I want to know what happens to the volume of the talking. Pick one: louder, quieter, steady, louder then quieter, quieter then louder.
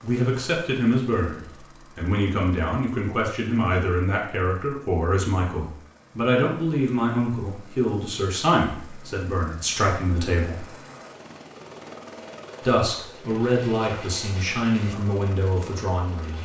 steady.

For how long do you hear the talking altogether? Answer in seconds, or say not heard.
14 s.